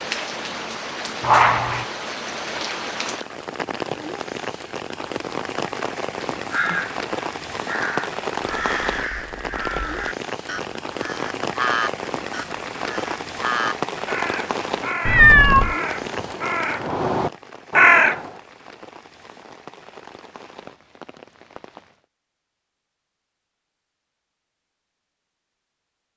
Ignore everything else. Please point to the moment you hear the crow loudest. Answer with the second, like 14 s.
18 s.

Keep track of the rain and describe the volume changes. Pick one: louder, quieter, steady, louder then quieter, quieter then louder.
quieter.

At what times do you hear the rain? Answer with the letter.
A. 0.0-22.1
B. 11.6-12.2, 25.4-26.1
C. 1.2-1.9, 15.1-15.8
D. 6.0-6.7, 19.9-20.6
A.